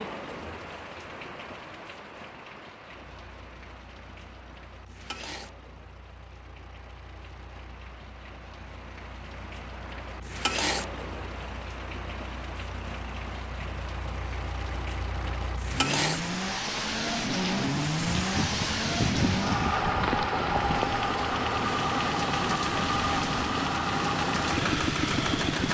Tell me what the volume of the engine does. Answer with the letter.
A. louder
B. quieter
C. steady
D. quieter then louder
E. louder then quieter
A.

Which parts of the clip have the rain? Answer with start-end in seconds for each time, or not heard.
0.0-25.6.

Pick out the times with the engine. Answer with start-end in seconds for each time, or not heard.
3.0-25.6.